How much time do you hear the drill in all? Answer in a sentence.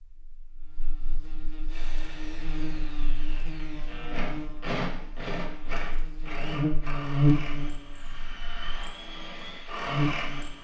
The drill can be heard for 9 seconds in total.